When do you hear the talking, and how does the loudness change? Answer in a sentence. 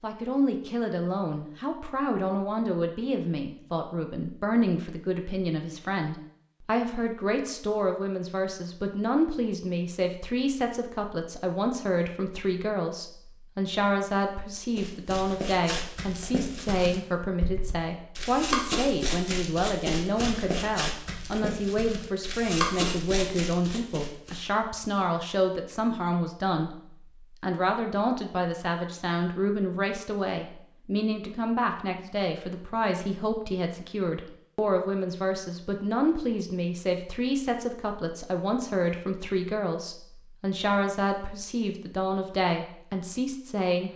You can hear the talking from 0.0 to 26.8 s, at a steady volume; and from 27.4 to 43.9 s, at a steady volume.